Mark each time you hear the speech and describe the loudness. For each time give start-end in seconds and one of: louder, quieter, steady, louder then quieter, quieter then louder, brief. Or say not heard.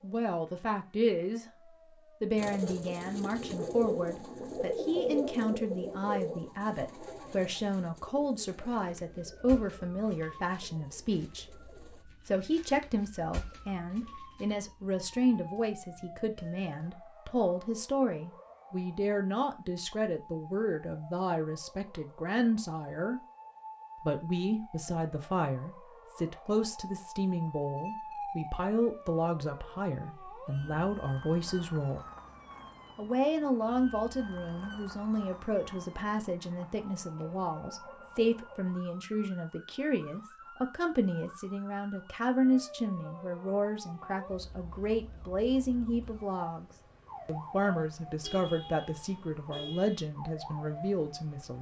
0.0-1.4 brief
2.2-23.2 steady
24.0-32.0 steady
33.0-51.5 steady.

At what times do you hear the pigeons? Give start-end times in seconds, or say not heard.
2.4-12.1.